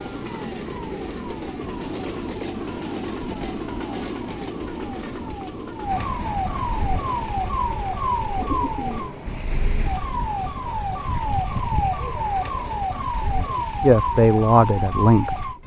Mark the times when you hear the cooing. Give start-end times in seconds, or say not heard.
8.3-9.8.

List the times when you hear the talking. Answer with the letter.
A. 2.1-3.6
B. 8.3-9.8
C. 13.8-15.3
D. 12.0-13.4
C.